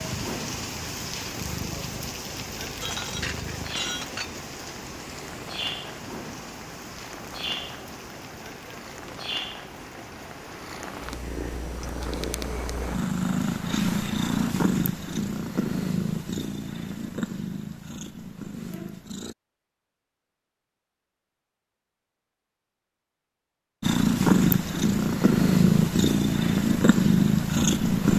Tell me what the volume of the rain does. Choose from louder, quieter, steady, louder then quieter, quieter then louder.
quieter.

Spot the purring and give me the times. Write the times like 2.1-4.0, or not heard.
0.0-19.4, 23.8-28.1.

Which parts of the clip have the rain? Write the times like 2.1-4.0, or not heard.
0.0-14.6.